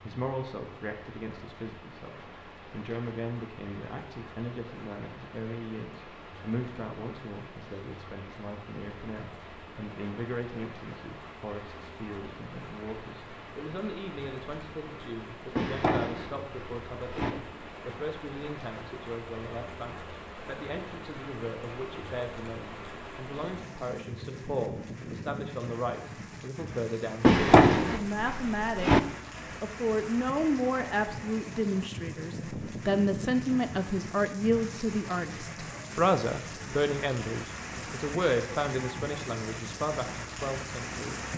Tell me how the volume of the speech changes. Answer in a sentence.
The volume of the speech goes up.